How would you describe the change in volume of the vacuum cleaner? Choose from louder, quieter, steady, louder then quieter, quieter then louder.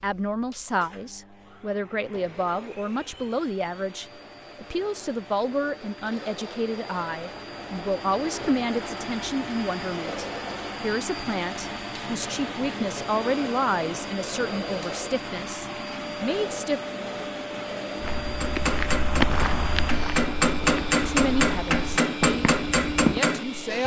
louder.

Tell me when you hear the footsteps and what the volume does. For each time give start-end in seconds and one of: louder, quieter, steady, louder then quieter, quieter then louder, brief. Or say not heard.
17.9-23.2 quieter then louder.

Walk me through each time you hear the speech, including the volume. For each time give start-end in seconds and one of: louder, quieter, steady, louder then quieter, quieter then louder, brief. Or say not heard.
0.0-16.8 steady
21.1-23.8 brief.